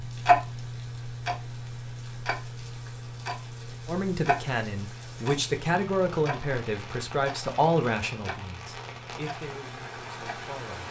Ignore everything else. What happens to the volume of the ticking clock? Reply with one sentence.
The loudness of the ticking clock goes down.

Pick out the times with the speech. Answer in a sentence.
You can hear the speech from 3.9 to 10.8 s.